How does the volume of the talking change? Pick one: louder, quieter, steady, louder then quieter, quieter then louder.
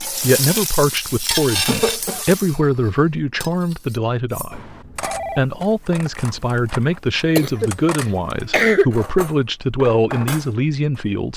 steady.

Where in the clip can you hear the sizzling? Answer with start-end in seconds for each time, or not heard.
0.0-2.6.